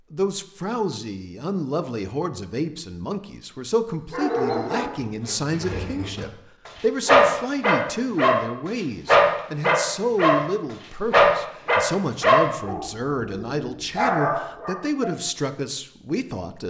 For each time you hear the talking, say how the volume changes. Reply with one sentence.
The talking can be heard from 0.1 to 16.6 s, at a steady volume.